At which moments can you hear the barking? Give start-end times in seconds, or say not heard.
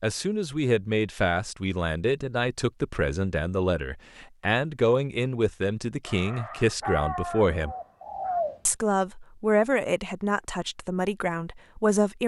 6.0-8.4.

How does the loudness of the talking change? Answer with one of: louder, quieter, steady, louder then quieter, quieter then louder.
steady.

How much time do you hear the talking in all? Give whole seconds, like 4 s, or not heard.
11 s.